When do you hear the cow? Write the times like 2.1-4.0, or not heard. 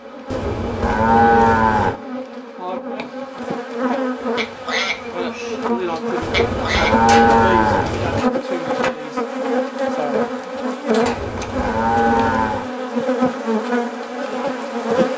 0.3-1.9, 6.2-8.2, 11.1-12.7.